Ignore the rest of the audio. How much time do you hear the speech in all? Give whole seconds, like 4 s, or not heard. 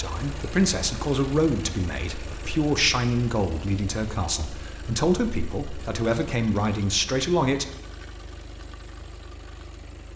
8 s.